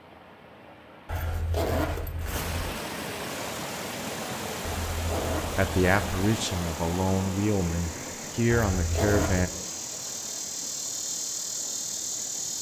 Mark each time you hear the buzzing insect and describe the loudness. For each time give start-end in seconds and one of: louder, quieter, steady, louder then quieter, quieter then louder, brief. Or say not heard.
3.5-12.5 louder.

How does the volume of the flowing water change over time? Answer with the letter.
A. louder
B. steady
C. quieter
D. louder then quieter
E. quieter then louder
D.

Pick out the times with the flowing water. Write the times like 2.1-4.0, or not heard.
0.0-12.5.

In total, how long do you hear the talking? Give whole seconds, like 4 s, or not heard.
4 s.